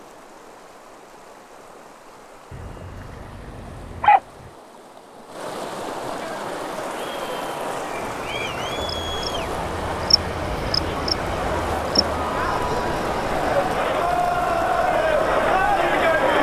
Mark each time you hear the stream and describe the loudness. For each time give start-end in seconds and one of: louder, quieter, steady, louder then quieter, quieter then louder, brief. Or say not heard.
0.0-16.3 louder.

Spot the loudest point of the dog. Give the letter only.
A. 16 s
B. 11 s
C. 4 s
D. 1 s
C.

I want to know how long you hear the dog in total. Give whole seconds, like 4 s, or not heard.
2 s.